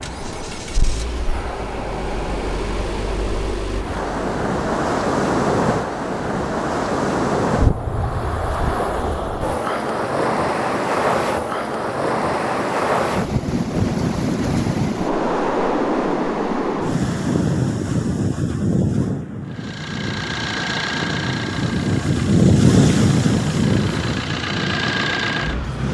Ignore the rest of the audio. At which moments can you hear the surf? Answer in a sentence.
The surf can be heard from 0.0 to 25.8 s.